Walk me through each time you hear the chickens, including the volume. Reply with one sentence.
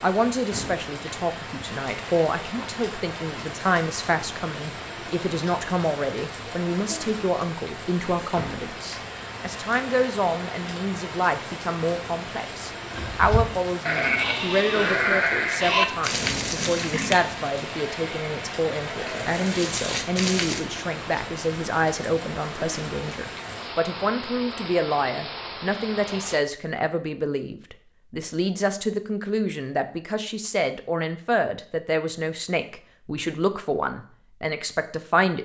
You can't hear the chickens here.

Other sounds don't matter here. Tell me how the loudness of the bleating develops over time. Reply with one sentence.
The loudness of the bleating goes down, then up.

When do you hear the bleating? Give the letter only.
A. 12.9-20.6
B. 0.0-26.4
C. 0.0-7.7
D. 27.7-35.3
A.